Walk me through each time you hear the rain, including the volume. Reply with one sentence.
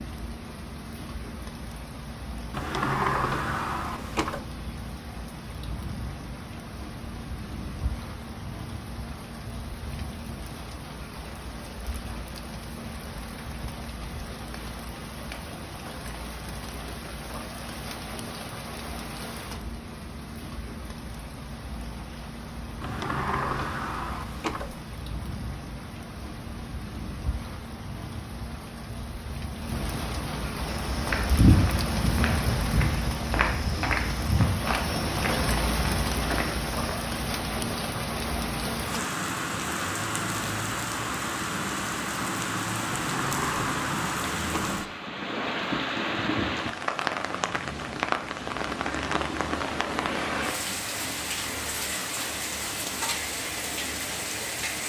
The rain can be heard from 0.0 to 54.8 s, getting louder.